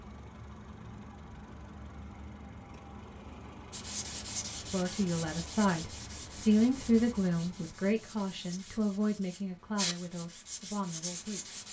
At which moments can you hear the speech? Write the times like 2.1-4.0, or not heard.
4.7-11.6.